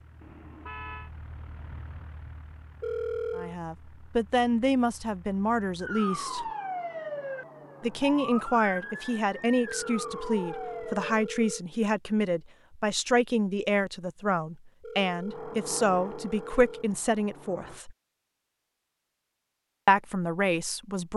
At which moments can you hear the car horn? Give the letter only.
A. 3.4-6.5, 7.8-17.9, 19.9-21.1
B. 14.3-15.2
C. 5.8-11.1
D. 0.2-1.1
D.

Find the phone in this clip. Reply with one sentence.
The phone can be heard from 2.8 to 3.5 s, from 9.7 to 11.7 s and from 14.8 to 16.9 s.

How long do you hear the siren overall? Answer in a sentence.
The siren can be heard for 5 seconds in total.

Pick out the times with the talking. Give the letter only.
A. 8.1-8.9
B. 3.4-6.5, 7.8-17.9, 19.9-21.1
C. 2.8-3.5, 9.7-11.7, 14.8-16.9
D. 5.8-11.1
B.